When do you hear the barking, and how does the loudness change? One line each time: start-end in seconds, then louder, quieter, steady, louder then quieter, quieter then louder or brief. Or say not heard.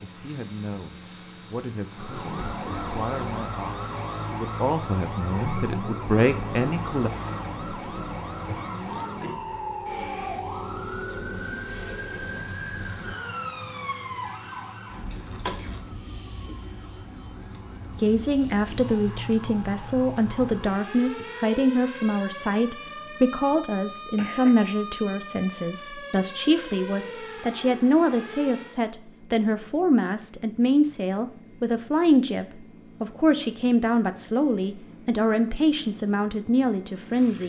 not heard.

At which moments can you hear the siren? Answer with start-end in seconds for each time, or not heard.
1.9-28.8.